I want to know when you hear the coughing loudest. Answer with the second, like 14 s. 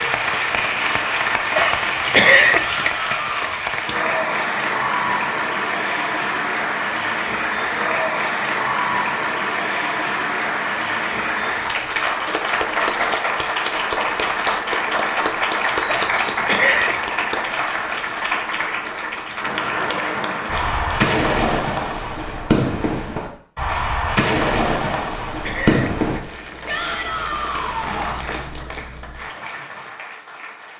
2 s.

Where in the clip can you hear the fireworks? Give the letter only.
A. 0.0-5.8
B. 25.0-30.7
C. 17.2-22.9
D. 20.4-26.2
D.